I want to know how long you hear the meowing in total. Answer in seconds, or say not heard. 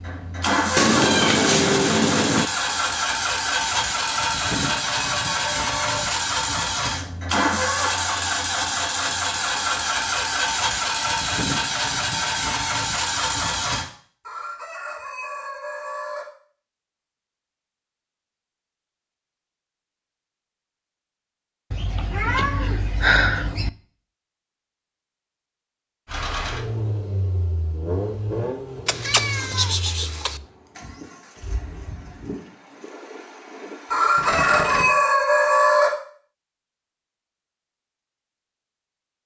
5 s.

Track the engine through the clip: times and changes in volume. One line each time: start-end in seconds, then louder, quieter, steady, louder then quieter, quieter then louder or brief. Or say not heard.
0.0-13.8 steady
26.1-34.9 quieter then louder.